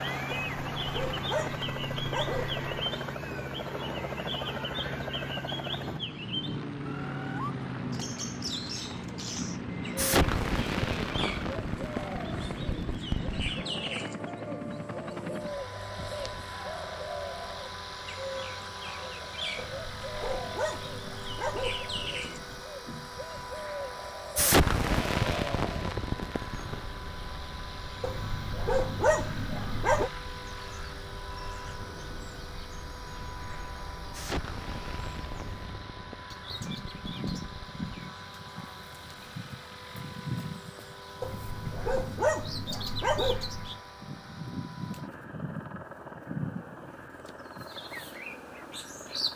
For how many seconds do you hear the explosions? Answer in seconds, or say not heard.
10 s.